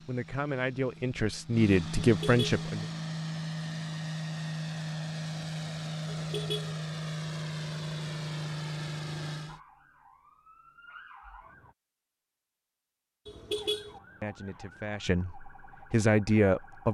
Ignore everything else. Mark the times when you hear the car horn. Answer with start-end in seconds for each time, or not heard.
2.0-2.6, 6.0-6.8, 13.2-14.0.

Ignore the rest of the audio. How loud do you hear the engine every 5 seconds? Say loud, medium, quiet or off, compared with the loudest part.
loud, loud, off, off.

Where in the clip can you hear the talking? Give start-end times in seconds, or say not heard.
0.1-2.9, 14.2-16.8.